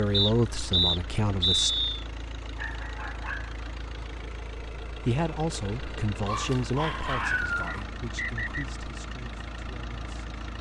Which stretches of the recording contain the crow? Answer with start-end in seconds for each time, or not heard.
not heard.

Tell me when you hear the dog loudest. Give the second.
7 s.